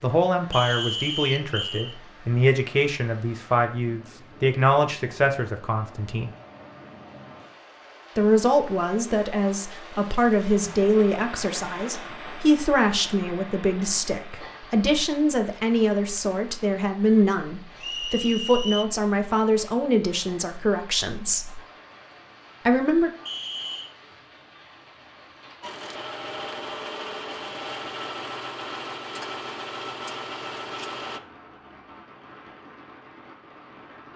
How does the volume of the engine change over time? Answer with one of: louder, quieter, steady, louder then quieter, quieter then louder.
steady.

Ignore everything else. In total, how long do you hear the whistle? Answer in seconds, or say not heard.
3 s.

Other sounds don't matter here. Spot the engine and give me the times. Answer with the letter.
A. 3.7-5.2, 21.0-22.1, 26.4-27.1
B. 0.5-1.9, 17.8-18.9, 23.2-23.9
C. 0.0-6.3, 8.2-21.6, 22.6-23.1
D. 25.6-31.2
D.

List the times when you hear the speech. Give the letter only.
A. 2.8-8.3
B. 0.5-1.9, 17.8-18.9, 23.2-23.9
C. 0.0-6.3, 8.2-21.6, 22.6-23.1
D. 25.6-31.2
C.